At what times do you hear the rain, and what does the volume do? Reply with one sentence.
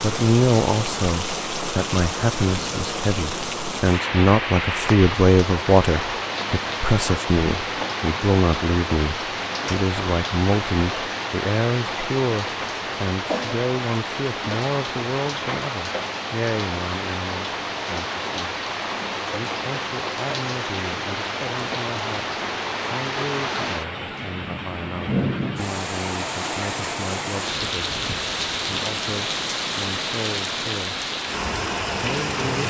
You can hear the rain from 0.0 to 32.6 s, at a steady volume.